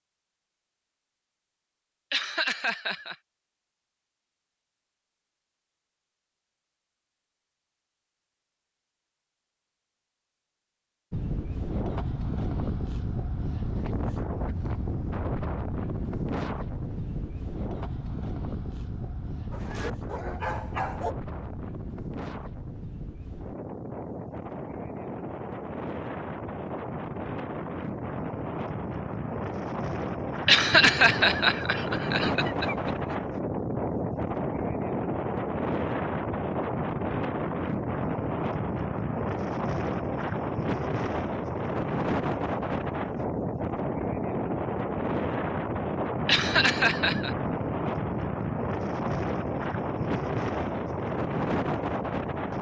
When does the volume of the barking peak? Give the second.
21 s.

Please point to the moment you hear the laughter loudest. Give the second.
31 s.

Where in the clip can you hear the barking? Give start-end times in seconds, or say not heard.
19.5-21.1.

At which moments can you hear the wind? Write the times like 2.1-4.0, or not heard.
11.1-52.5.